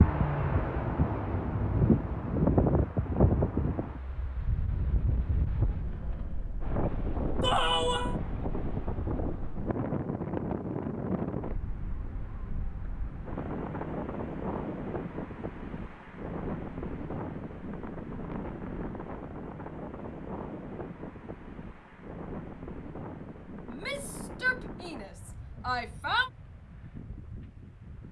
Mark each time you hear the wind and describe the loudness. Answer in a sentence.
The wind can be heard from 0.0 to 28.0 s, getting quieter.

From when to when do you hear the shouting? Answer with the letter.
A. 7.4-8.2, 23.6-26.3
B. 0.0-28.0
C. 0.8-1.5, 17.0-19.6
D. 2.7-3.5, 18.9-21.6
A.